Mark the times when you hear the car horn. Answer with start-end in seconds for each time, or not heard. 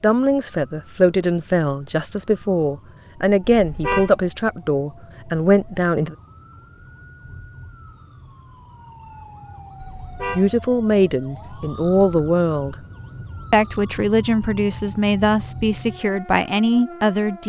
3.5-4.2, 9.8-10.5.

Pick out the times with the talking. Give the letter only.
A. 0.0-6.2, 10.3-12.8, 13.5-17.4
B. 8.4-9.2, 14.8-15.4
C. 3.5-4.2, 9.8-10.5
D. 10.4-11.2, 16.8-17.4
A.